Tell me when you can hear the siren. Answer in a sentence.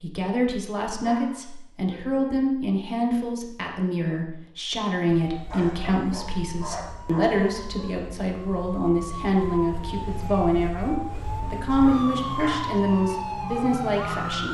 You can hear the siren from 5.0 to 14.4 s.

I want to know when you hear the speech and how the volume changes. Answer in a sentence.
You can hear the speech from 0.0 to 14.4 s, at a steady volume.